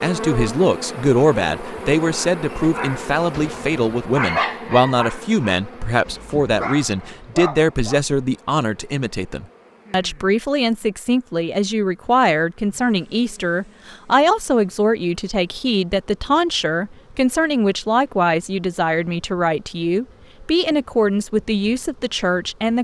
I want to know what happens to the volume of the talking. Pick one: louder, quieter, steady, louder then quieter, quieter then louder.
steady.